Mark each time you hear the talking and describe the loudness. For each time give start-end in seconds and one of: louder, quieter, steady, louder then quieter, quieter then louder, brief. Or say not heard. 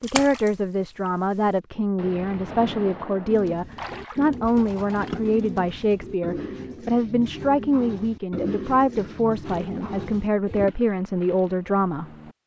0.0-12.1 steady.